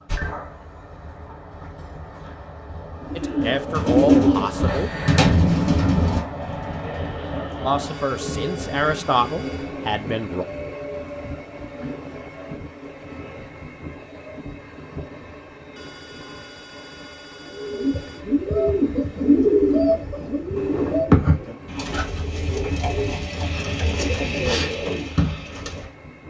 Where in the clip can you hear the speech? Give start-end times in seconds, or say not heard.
3.1-4.9, 7.7-10.4.